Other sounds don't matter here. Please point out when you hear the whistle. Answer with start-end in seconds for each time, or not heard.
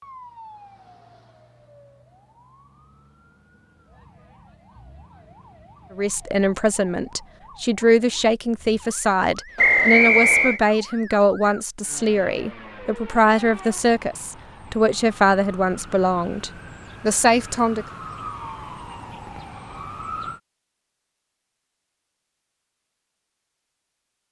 9.6-10.6.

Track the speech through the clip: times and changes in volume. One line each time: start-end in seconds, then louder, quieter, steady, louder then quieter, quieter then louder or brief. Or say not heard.
6.0-17.9 steady.